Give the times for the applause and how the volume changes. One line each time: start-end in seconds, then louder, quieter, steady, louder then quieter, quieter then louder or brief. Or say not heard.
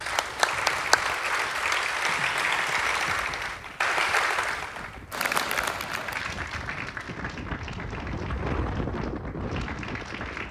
0.0-10.4 quieter.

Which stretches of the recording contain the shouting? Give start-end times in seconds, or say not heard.
not heard.